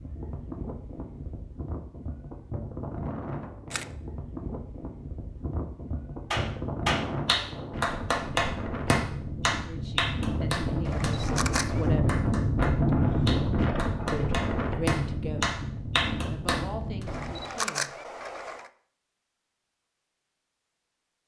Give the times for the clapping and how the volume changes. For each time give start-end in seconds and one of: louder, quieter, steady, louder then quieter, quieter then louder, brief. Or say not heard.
6.3-17.1 quieter then louder.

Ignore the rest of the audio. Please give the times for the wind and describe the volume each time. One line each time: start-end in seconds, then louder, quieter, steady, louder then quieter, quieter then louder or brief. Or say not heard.
0.0-17.6 louder then quieter.